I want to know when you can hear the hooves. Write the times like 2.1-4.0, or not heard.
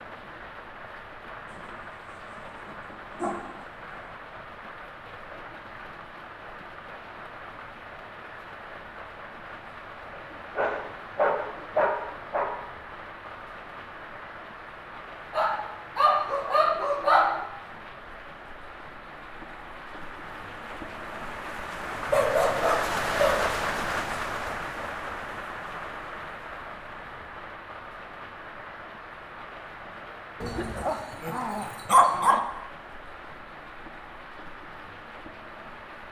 not heard.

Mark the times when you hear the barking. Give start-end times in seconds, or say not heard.
1.4-4.1, 10.1-12.5, 15.3-17.4, 22.1-23.4, 30.4-32.4.